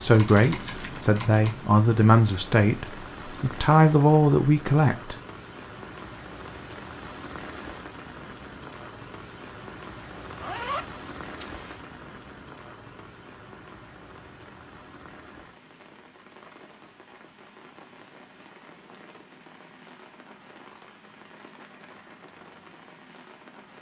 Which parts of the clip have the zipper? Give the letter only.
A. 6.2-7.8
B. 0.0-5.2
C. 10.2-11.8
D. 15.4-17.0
C.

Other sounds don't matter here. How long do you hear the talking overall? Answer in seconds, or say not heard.
5 s.